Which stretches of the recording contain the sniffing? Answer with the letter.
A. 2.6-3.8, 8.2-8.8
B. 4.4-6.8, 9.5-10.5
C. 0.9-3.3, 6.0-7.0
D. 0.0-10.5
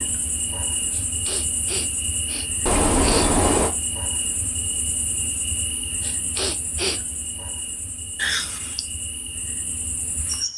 C.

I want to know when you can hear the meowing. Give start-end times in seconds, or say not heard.
2.6-3.8, 8.2-8.8.